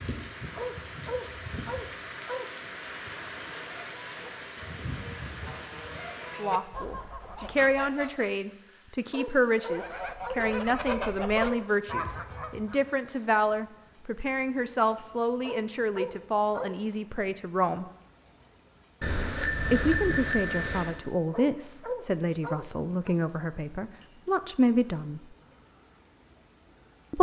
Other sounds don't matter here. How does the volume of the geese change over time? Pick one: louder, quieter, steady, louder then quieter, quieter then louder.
louder.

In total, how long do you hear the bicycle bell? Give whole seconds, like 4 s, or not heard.
2 s.